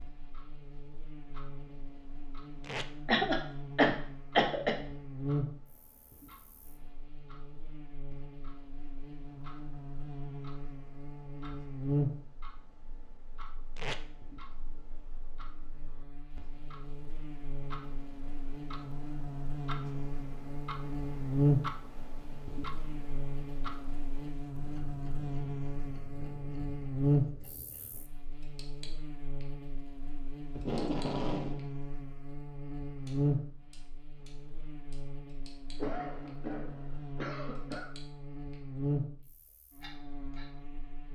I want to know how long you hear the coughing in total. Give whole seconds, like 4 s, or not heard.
4 s.